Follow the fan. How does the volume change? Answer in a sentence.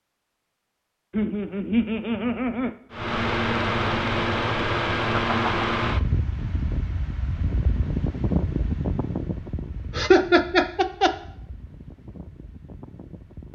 The volume of the fan goes down.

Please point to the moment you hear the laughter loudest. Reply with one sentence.
The loudest moment of the laughter is at 10 seconds.